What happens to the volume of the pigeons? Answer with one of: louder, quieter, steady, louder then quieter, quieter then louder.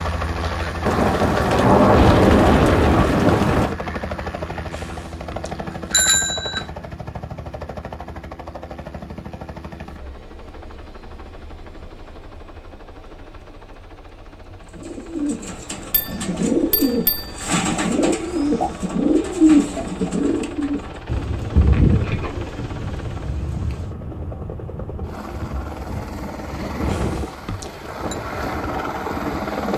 louder then quieter.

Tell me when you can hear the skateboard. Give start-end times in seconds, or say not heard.
not heard.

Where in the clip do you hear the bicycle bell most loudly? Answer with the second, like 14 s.
6 s.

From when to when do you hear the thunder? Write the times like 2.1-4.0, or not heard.
0.8-3.8, 21.1-23.9.